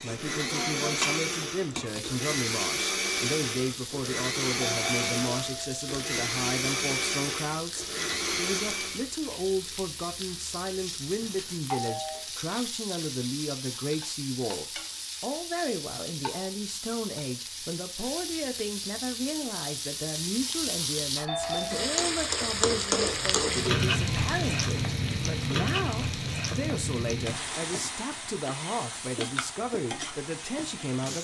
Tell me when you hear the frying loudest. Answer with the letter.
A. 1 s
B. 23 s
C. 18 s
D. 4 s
B.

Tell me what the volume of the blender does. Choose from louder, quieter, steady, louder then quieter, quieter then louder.
steady.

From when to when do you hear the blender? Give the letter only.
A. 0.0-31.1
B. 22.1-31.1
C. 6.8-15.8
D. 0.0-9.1
D.